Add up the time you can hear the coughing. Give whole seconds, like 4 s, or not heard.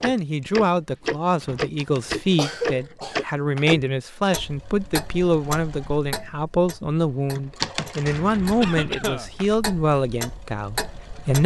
2 s.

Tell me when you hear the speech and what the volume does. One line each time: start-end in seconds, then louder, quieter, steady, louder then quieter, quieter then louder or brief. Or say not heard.
0.0-11.4 steady.